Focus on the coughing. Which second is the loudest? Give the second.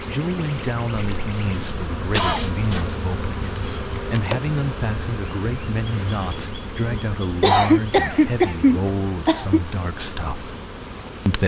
8 s.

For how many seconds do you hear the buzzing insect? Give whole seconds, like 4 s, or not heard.
11 s.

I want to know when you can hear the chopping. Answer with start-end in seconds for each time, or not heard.
not heard.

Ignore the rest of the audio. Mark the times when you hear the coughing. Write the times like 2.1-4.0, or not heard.
1.1-2.9, 7.4-9.6.